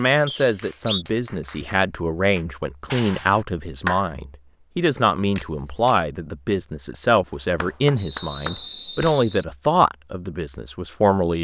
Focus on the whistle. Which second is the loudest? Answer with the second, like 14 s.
1 s.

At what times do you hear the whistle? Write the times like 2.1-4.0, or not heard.
0.2-1.1, 8.0-9.3.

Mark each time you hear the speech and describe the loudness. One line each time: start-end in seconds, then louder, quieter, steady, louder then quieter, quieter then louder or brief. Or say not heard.
0.0-11.3 steady.